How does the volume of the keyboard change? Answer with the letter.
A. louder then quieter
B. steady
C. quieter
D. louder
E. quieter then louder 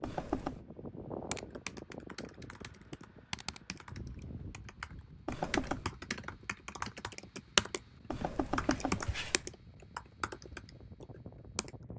A.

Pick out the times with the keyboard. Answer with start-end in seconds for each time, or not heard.
1.3-11.7.